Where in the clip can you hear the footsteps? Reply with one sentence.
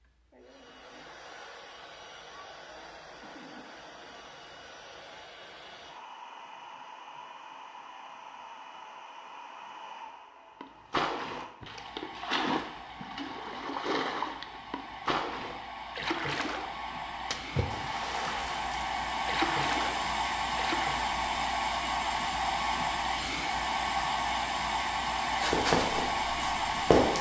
You can hear the footsteps from 25.4 to 27.1 s.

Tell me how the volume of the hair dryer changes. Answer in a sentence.
The volume of the hair dryer goes up.